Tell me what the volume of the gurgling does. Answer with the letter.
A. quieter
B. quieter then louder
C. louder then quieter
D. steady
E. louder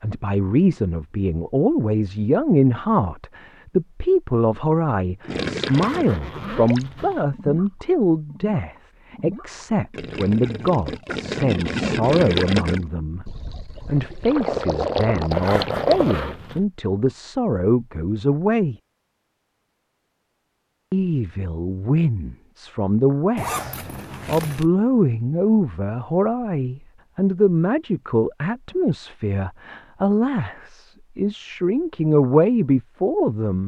B.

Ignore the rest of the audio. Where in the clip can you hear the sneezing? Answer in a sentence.
You can't hear the sneezing here.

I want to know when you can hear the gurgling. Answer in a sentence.
The gurgling can be heard from 5.2 to 16.2 s.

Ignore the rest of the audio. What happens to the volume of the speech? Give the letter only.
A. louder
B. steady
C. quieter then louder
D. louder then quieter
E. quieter
B.